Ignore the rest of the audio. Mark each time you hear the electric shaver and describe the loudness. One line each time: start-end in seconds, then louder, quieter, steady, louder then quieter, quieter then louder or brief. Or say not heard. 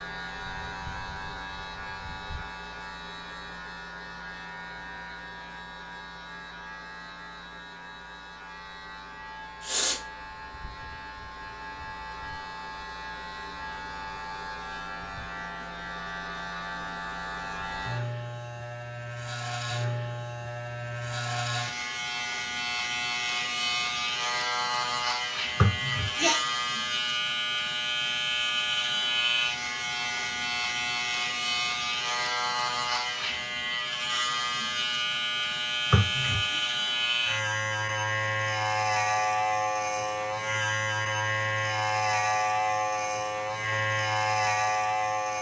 0.0-45.3 louder.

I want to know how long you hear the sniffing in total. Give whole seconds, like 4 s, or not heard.
2 s.